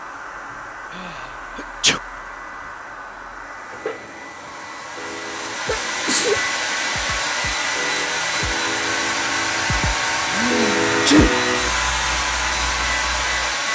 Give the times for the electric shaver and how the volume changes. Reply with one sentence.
The electric shaver can be heard from 0.0 to 13.7 s, getting louder.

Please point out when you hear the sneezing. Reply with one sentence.
The sneezing can be heard from 0.9 to 2.0 s, from 5.7 to 6.4 s and from 10.3 to 11.4 s.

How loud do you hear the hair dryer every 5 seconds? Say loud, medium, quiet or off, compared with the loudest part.
quiet, loud, loud.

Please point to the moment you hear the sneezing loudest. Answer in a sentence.
The loudest moment of the sneezing is at 11 seconds.